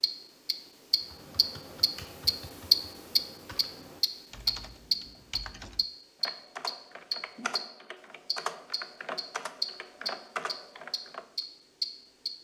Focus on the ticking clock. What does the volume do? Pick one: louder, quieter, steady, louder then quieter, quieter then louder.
louder then quieter.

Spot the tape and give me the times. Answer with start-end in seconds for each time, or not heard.
not heard.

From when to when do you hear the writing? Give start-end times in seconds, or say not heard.
not heard.